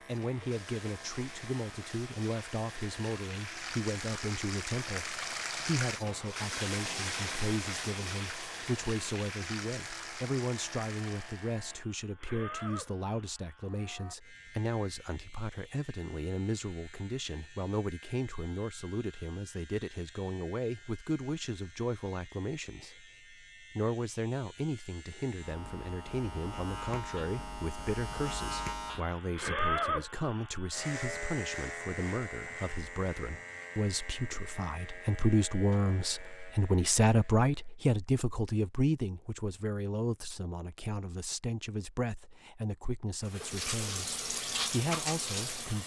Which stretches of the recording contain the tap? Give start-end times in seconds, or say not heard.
0.0-11.6, 43.2-45.8.